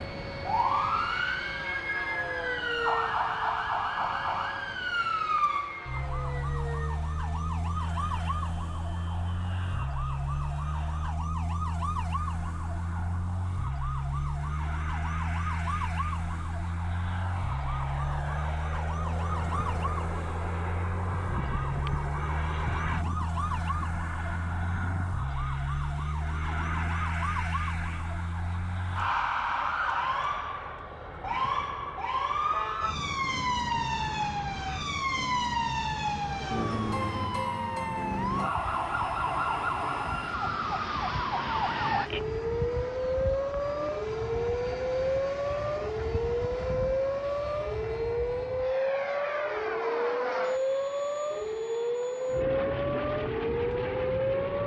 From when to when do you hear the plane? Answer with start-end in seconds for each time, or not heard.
0.0-54.6.